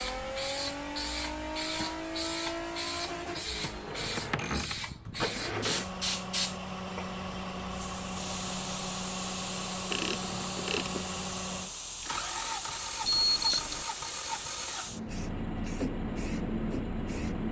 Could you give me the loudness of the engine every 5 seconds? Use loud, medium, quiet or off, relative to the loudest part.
loud, loud, loud, medium.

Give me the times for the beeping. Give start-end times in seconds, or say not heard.
13.1-13.8.